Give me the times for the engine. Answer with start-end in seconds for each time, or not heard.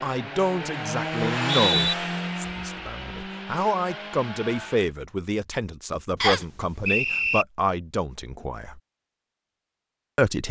0.0-5.0.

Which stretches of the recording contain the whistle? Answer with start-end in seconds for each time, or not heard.
1.2-1.9, 6.2-7.5.